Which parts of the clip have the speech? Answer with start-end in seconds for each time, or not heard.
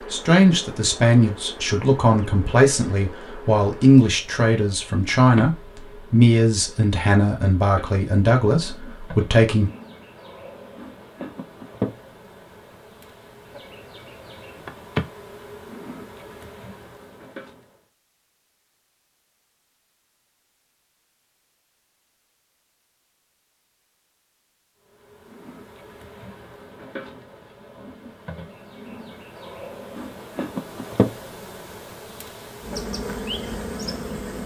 0.1-9.7.